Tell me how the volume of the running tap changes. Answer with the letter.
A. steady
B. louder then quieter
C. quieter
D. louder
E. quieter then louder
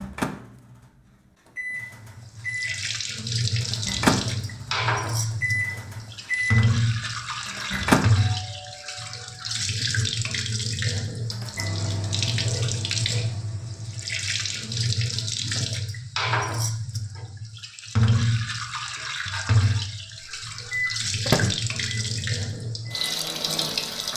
A.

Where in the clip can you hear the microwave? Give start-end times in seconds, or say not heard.
0.0-8.1, 11.3-14.9, 20.2-24.1.